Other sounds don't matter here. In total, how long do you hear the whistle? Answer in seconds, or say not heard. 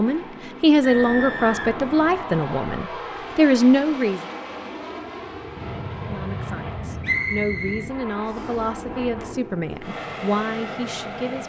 3 s.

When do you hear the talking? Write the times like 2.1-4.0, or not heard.
0.0-4.2, 6.0-11.4.